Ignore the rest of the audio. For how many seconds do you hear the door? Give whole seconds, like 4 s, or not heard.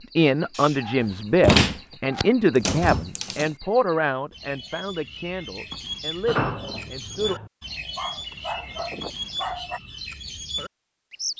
3 s.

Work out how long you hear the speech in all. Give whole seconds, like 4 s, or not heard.
7 s.